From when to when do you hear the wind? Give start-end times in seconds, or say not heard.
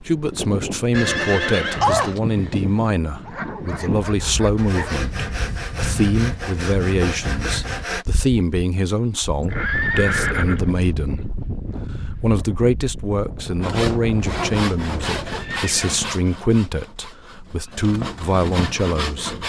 0.0-15.6.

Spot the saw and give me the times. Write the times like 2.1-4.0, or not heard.
4.5-8.1, 13.6-19.4.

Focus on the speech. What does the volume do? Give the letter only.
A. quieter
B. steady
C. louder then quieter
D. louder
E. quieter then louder
B.